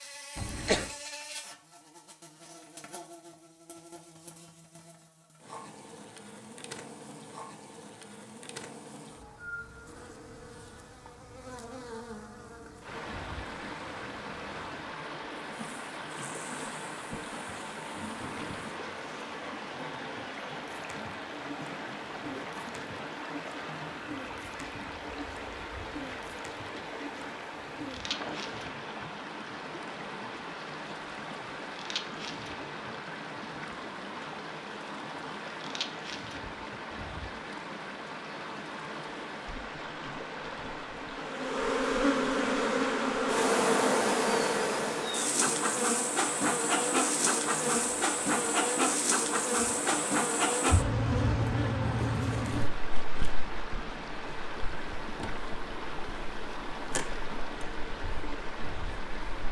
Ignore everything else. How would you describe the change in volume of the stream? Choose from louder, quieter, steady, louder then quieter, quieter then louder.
steady.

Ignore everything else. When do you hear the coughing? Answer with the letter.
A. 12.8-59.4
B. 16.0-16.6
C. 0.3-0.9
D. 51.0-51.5
C.